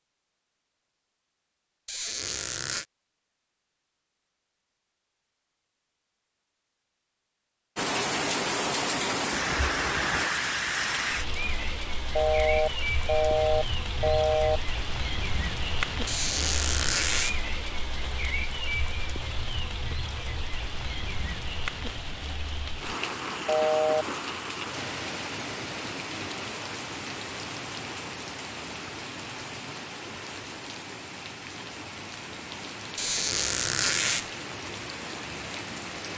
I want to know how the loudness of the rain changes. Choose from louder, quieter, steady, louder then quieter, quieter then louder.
quieter.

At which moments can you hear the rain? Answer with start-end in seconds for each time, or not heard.
7.8-36.1.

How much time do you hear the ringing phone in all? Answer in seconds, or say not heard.
3 s.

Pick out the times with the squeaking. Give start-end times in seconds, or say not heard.
1.9-2.9, 16.1-17.4, 33.0-34.3.